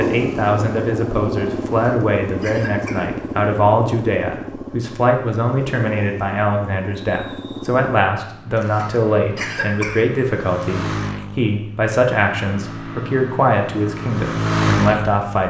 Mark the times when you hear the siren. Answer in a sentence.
The siren can't be heard in this clip.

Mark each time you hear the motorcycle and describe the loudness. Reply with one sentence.
You can hear the motorcycle from 0.0 to 15.4 s, getting quieter then louder.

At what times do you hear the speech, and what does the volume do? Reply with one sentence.
You can hear the speech from 0.0 to 15.4 s, at a steady volume.